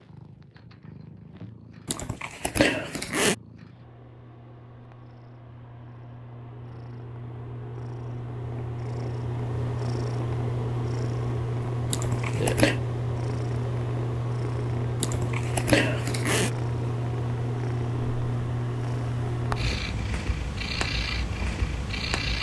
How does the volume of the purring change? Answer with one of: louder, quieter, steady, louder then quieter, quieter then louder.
louder.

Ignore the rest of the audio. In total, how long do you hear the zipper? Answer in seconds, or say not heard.
4 s.